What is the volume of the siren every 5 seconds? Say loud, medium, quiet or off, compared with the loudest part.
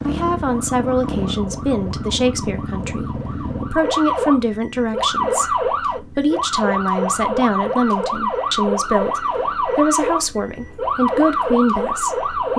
medium, loud, loud.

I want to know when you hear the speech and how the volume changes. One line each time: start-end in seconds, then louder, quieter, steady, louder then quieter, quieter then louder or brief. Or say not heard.
0.0-12.5 steady.